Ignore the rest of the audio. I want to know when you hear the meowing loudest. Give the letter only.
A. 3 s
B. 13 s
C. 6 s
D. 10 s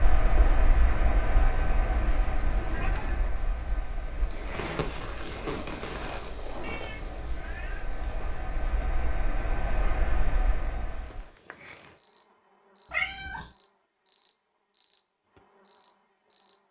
B.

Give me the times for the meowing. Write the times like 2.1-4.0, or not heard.
1.9-3.2, 6.6-8.0, 12.9-13.5.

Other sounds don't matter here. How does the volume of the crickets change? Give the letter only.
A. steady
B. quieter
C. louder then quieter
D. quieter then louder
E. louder
C.